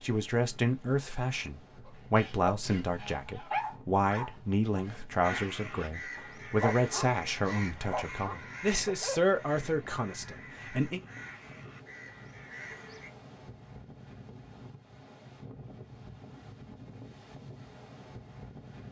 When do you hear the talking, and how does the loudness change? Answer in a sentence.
The talking can be heard from 0.0 to 11.0 s, at a steady volume.